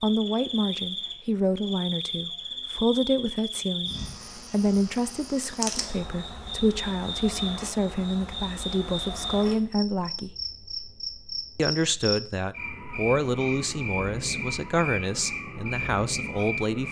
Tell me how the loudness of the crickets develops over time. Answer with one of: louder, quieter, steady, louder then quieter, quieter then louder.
steady.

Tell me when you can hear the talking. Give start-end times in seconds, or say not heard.
0.0-10.3, 11.6-16.8.